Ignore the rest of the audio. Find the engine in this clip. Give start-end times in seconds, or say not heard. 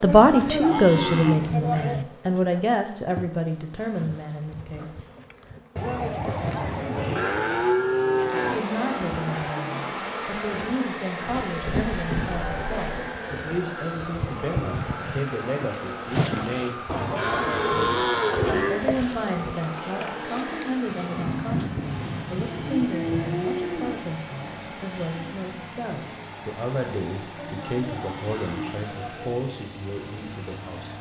8.3-30.9.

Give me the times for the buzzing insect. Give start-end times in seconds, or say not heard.
0.0-23.5.